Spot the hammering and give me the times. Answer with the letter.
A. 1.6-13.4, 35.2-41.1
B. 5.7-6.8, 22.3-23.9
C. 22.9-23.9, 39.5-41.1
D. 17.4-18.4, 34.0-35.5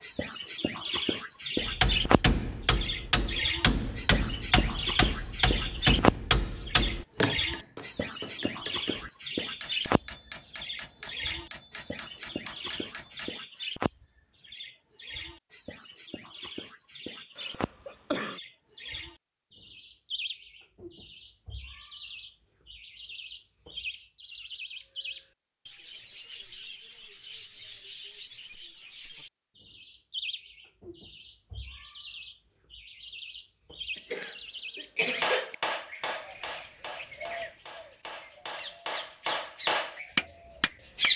A.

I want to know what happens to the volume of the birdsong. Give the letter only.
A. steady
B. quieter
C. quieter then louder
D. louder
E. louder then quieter
C.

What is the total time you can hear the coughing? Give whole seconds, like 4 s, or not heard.
3 s.